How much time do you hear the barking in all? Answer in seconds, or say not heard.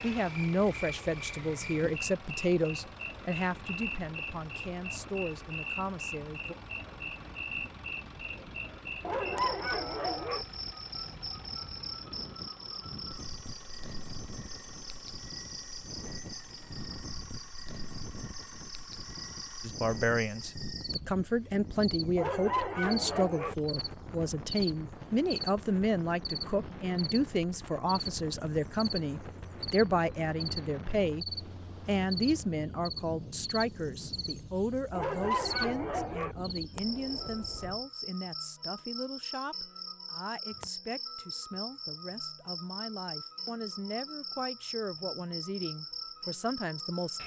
4 s.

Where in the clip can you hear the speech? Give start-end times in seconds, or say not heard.
0.0-6.5, 19.6-47.2.